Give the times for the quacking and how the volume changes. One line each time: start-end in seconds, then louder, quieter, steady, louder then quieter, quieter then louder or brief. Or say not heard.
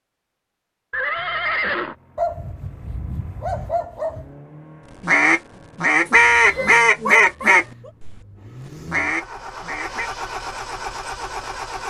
5.0-10.1 quieter then louder.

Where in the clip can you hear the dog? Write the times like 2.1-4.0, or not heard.
2.1-4.3, 6.0-7.9.